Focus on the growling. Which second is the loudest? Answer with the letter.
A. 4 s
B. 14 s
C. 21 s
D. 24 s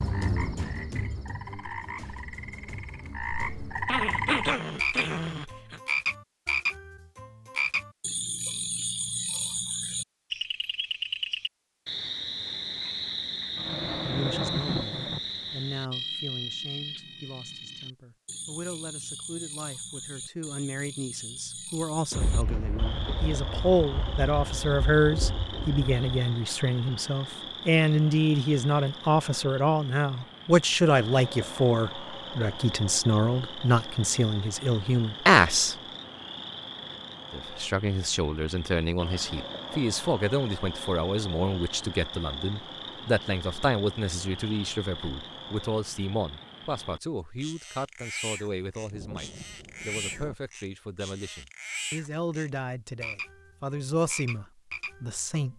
A.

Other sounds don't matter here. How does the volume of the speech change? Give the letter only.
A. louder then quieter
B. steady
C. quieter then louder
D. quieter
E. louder
A.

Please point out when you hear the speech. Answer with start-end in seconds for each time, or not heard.
13.8-35.8, 37.3-55.5.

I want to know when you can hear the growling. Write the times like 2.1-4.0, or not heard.
3.9-5.8.